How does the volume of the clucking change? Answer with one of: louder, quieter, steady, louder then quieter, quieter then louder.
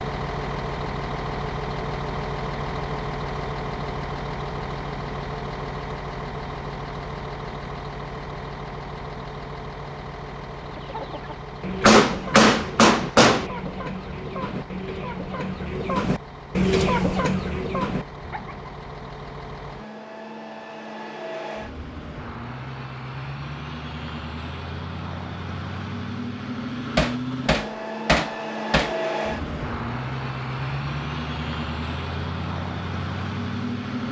louder.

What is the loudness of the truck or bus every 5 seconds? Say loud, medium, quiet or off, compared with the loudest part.
loud, loud, medium, medium, medium, loud, loud.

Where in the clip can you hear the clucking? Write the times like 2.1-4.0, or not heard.
10.7-18.6.